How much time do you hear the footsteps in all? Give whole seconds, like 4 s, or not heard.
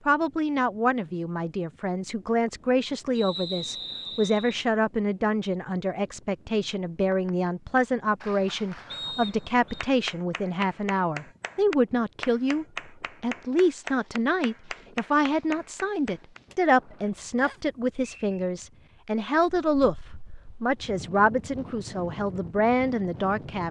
not heard.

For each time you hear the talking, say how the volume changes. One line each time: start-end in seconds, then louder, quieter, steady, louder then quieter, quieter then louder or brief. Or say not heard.
0.1-23.6 steady.